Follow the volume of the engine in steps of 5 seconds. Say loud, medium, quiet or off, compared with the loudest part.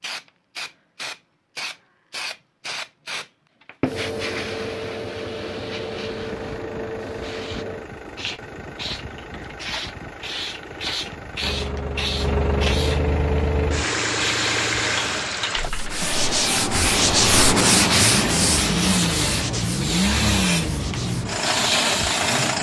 off, quiet, loud, loud, loud.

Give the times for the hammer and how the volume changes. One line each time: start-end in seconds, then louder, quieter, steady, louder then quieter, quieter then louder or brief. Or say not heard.
not heard.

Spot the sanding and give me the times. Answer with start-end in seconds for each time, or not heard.
15.6-22.5.